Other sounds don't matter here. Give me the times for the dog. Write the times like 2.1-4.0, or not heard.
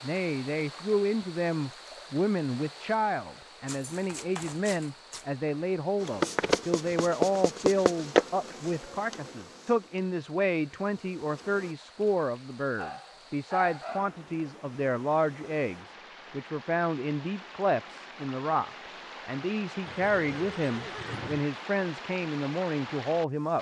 3.6-5.2, 12.8-14.2.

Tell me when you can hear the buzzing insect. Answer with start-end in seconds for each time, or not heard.
6.0-11.7.